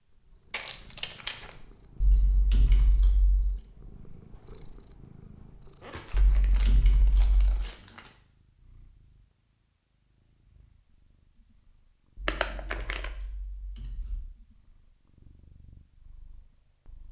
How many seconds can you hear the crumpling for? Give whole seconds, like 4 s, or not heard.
4 s.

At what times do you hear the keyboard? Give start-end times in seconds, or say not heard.
2.0-3.5, 6.1-7.7, 12.2-14.2.